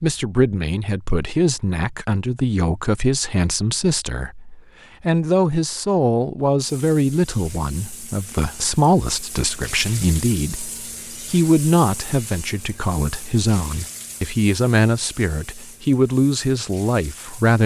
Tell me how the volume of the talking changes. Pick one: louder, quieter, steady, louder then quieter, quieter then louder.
steady.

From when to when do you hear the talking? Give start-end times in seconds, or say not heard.
0.0-17.6.